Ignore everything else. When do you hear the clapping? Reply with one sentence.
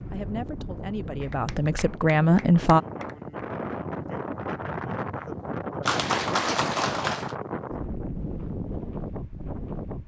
The clapping can be heard from 1.2 to 3.1 s and from 5.8 to 7.3 s.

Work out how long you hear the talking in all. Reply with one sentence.
The talking can be heard for 3 seconds in total.